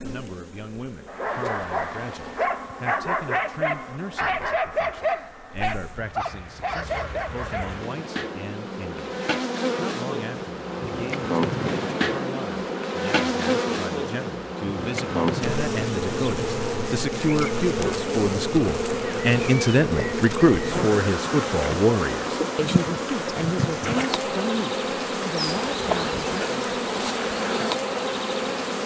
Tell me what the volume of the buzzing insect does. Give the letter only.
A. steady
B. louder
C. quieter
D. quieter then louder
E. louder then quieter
B.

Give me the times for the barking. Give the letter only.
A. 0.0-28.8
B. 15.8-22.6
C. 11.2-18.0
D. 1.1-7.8
D.